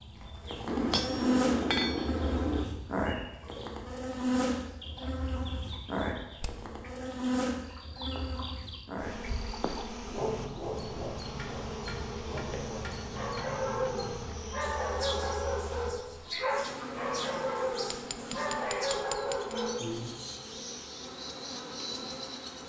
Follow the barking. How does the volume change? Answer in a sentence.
The loudness of the barking goes up.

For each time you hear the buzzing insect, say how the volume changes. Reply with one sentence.
The buzzing insect can be heard from 0.0 to 22.6 s, getting quieter.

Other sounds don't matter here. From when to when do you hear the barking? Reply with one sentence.
You can hear the barking from 10.0 to 20.1 s.